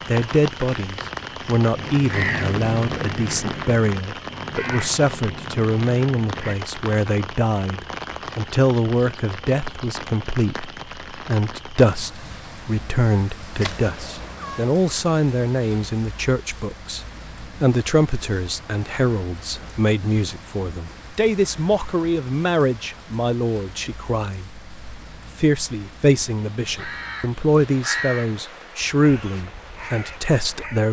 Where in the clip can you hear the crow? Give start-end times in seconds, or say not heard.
1.7-6.5, 26.6-30.8.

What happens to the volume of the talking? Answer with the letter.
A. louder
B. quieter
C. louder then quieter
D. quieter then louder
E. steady
E.